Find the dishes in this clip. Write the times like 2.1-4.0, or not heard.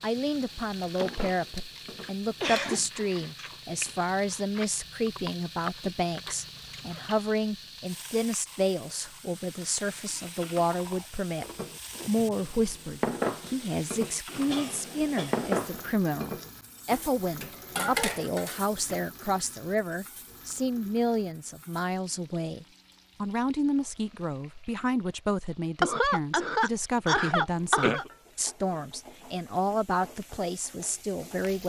0.0-2.6, 11.6-19.1.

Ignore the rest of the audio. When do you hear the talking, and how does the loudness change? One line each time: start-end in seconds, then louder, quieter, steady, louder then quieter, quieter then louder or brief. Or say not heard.
0.0-11.4 steady
12.1-31.6 steady.